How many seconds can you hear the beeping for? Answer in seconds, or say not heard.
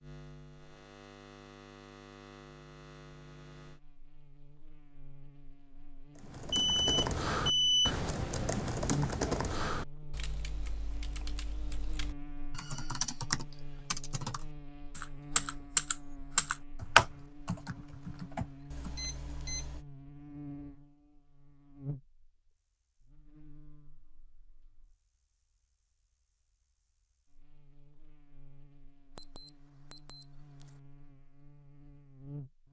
4 s.